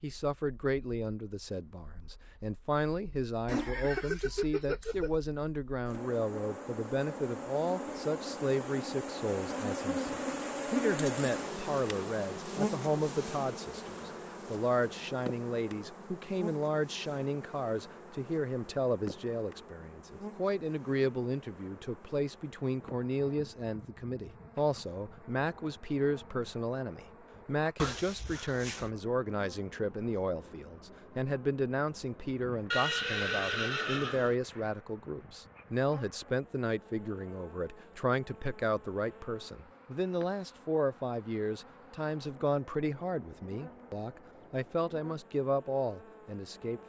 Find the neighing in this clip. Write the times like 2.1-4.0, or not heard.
3.5-5.2, 27.8-28.9, 32.7-34.4.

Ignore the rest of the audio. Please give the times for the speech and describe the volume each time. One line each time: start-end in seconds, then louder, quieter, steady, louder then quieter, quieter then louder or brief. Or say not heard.
0.0-46.8 steady.